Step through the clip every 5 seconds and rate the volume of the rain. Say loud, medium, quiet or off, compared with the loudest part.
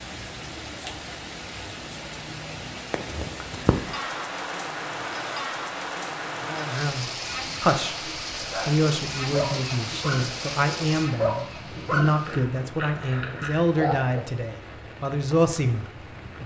loud, loud, medium, medium.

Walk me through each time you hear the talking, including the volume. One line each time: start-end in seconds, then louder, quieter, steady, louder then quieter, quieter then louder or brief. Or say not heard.
6.5-16.4 steady.